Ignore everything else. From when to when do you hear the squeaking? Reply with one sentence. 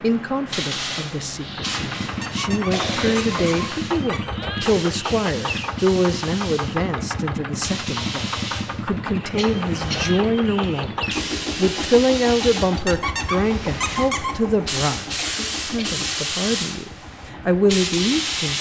The squeaking can be heard from 2.2 to 4.2 s and from 12.8 to 14.3 s.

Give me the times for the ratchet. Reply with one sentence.
You can't hear the ratchet here.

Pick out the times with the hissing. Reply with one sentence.
The hissing can be heard from 0.0 to 18.5 s.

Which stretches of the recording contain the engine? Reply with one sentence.
You can hear the engine from 1.4 to 18.5 s.